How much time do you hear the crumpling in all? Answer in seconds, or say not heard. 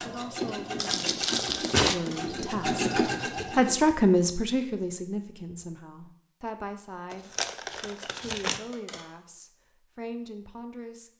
3 s.